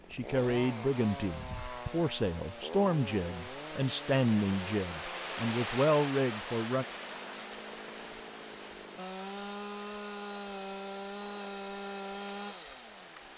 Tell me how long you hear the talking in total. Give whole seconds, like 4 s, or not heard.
7 s.